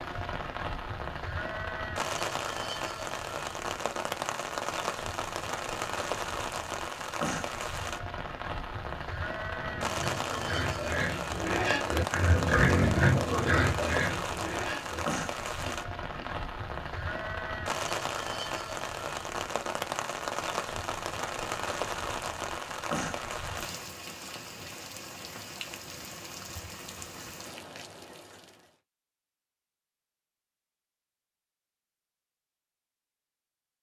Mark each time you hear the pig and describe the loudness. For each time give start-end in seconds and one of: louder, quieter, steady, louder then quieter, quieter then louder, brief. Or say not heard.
9.4-16.4 louder then quieter.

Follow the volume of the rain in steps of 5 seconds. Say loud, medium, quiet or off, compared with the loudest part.
loud, loud, loud, loud, loud, medium, off.